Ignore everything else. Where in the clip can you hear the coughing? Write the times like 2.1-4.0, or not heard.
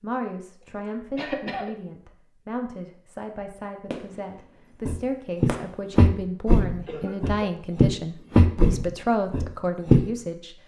0.6-1.7, 6.8-7.4.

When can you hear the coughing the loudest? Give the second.
1 s.